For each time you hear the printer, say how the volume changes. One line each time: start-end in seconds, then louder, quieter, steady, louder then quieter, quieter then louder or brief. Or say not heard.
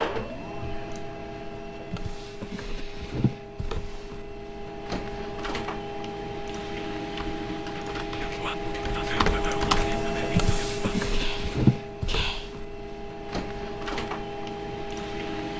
0.0-15.5 louder then quieter.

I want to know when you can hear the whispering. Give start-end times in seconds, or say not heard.
8.2-12.6.